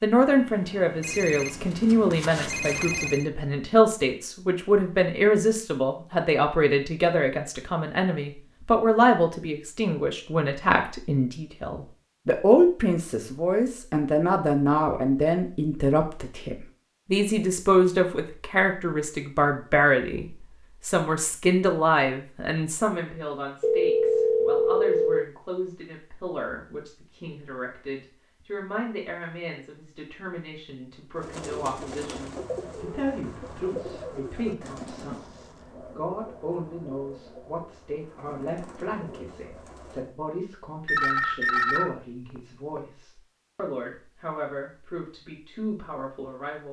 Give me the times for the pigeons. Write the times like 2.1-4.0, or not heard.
31.1-40.1.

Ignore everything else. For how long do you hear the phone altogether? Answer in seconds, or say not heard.
6 s.